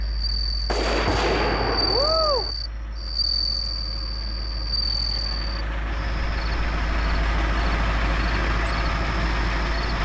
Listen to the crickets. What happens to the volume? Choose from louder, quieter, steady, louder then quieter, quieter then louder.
quieter.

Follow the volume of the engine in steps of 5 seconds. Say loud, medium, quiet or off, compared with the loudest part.
quiet, loud.